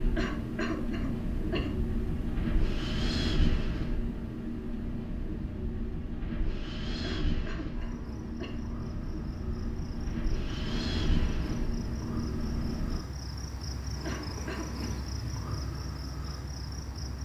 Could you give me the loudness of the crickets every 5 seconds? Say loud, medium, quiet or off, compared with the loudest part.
off, medium, loud, loud.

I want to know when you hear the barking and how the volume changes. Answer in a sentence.
The barking can't be heard in this clip.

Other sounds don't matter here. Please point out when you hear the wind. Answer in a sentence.
You can hear the wind from 0.0 to 13.1 s.